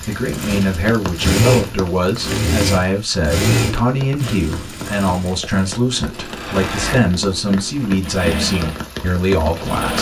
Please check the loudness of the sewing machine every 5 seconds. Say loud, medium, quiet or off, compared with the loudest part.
loud, medium.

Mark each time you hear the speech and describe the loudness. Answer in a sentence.
You can hear the speech from 0.1 to 9.9 s, at a steady volume.